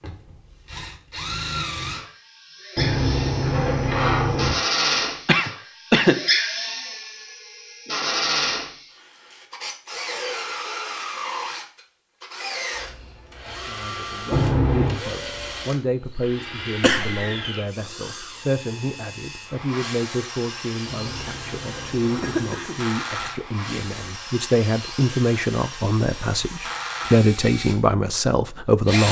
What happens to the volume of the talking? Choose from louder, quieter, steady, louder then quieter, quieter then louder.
louder.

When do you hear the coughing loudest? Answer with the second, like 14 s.
6 s.